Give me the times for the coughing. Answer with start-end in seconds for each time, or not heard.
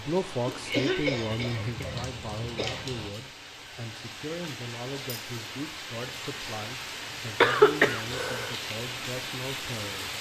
0.5-2.8, 7.4-8.6.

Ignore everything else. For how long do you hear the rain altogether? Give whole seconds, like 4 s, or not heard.
10 s.